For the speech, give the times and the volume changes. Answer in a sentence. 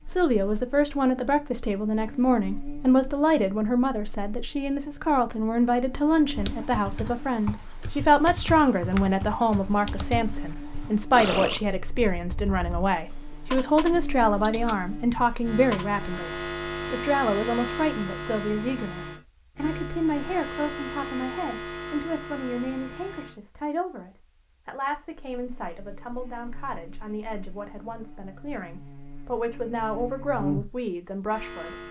You can hear the speech from 0.1 to 31.8 s, getting quieter.